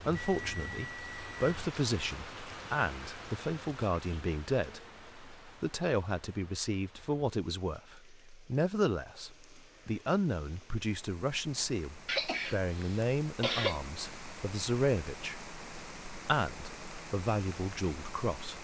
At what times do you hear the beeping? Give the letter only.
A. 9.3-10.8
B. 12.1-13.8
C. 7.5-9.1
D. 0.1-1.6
D.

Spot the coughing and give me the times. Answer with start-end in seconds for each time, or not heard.
12.1-13.8.